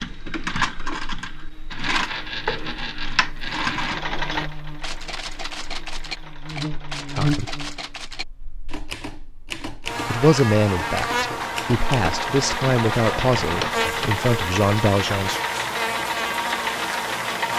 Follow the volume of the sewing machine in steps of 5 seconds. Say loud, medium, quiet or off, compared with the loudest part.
loud, quiet, loud, loud.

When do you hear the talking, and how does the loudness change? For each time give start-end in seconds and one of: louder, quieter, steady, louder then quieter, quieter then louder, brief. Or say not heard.
7.1-7.5 brief
10.1-15.4 steady.